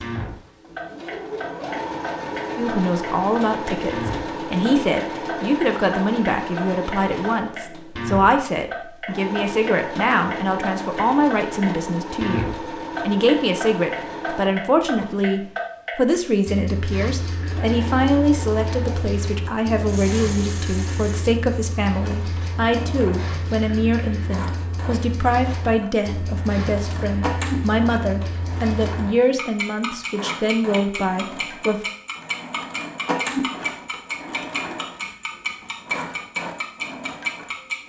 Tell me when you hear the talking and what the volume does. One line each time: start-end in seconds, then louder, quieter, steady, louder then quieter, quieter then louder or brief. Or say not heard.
2.5-31.8 steady.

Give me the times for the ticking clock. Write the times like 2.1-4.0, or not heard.
0.0-37.8.